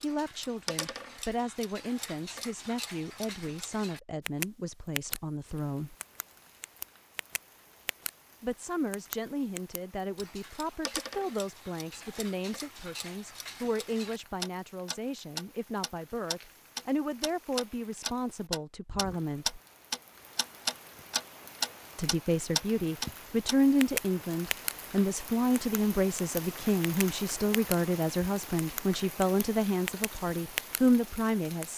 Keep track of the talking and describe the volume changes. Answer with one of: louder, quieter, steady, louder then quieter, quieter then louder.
louder.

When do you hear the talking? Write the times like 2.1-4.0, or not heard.
0.0-6.0, 8.4-19.6, 21.9-31.7.